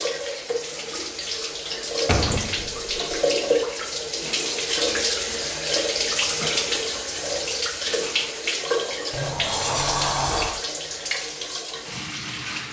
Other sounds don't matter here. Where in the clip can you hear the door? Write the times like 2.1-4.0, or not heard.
2.0-3.0, 9.1-10.6.